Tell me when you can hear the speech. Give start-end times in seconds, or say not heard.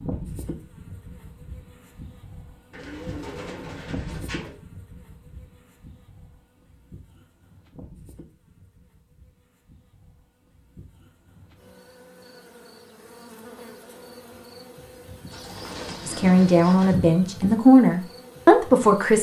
16.1-19.1.